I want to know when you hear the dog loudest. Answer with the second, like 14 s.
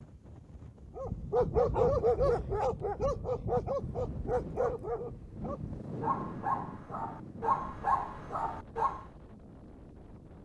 2 s.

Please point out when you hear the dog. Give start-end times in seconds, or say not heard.
0.9-9.1.